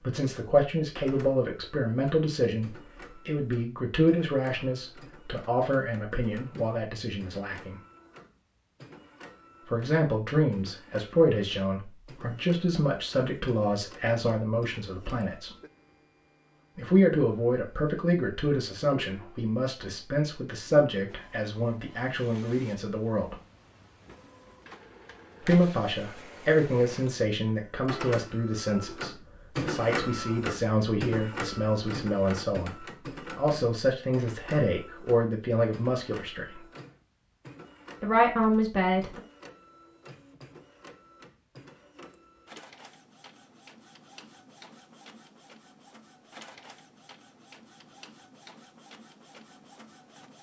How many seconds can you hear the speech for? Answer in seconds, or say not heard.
33 s.